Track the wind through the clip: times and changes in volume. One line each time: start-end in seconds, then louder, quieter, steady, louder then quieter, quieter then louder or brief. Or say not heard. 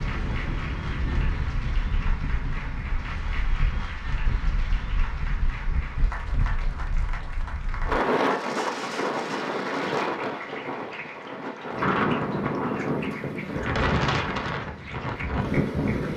0.0-16.1 louder.